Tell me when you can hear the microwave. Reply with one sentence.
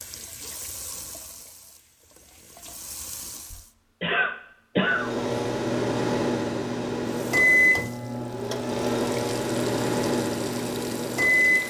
The microwave can be heard from 4.8 to 11.6 s.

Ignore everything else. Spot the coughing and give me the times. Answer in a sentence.
You can hear the coughing from 3.5 to 5.1 s.